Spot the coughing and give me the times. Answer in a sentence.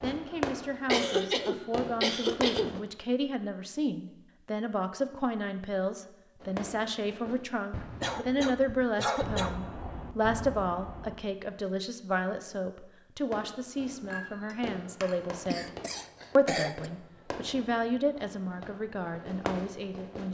The coughing can be heard from 0.8 to 2.8 s, from 8.0 to 9.6 s and from 15.5 to 16.9 s.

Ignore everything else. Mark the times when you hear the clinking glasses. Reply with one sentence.
The clinking glasses can be heard from 14.1 to 15.2 s.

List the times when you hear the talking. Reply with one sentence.
You can hear the talking from 0.0 to 15.7 s and from 16.4 to 20.2 s.